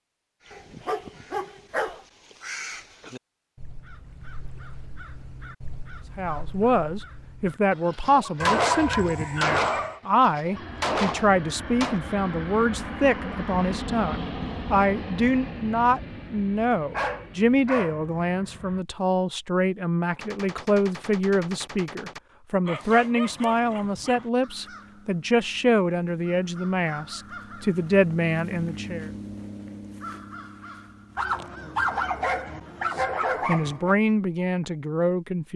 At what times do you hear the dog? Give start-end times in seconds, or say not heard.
0.5-2.0, 8.4-10.0, 16.9-18.1, 22.6-24.3, 31.1-34.0.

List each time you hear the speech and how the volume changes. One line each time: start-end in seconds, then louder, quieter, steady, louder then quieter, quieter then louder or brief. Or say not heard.
6.2-29.1 steady
33.0-35.5 brief.